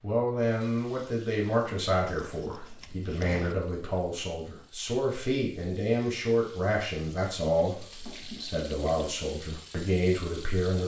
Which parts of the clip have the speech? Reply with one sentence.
You can hear the speech from 0.0 to 10.8 s.